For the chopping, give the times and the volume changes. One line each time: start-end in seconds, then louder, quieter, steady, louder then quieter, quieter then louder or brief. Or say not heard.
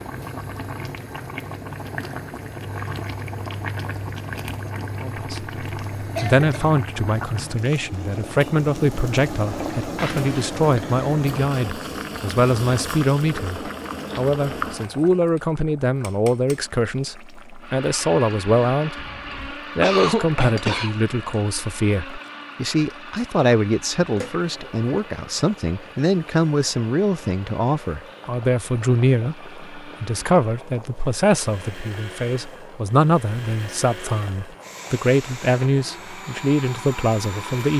not heard.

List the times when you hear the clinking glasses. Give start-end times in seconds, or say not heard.
not heard.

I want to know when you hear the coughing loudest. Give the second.
20 s.